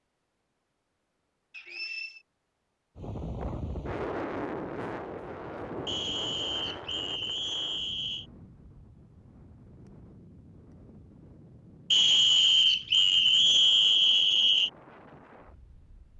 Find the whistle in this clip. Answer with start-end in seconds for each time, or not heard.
1.5-2.2, 5.8-8.2, 11.9-14.7.